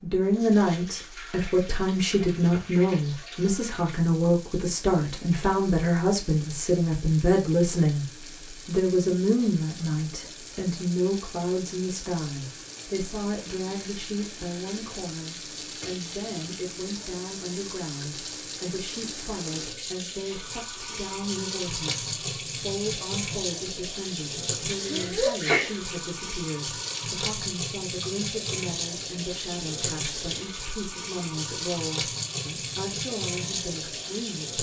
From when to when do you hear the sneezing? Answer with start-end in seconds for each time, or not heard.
24.9-25.8.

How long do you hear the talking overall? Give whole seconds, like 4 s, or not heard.
34 s.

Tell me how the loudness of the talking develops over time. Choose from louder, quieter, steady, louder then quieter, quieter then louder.
quieter.